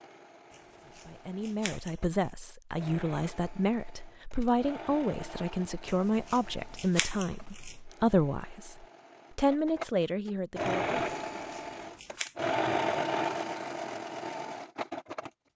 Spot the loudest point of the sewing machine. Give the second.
13 s.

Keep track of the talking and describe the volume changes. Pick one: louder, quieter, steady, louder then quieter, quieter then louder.
steady.